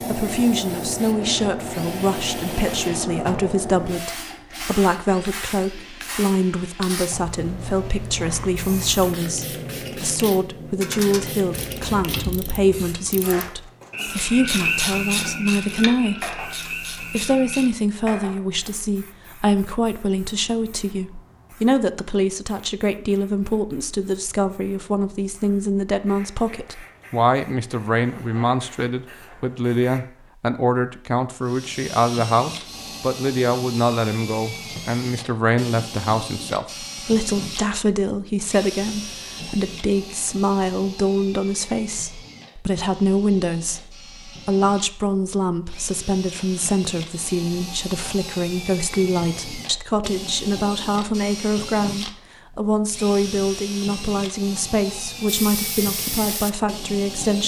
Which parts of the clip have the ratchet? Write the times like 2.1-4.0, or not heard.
10.8-17.7.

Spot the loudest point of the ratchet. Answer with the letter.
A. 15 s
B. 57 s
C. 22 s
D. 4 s
A.